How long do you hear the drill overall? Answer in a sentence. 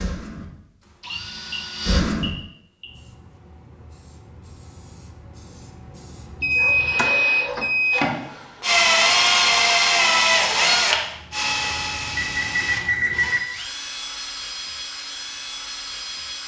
The drill can be heard for 12 seconds in total.